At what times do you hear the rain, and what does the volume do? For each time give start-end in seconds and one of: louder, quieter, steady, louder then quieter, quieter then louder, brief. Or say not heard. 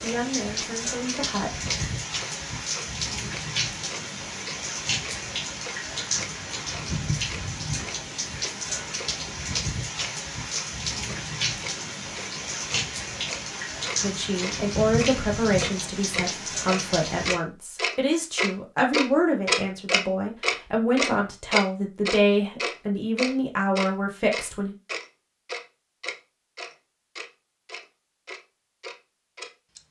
0.0-17.4 steady.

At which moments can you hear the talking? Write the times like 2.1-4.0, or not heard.
0.0-1.9, 14.0-24.8.